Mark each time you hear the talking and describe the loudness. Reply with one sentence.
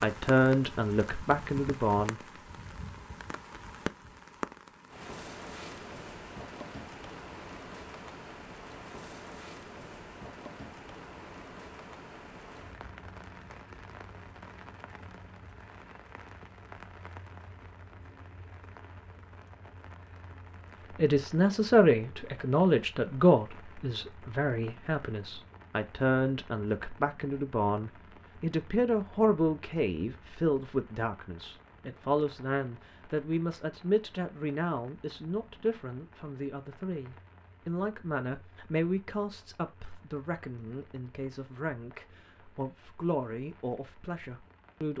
The talking can be heard briefly from 0.0 to 2.2 s; and from 20.9 to 44.9 s, getting quieter.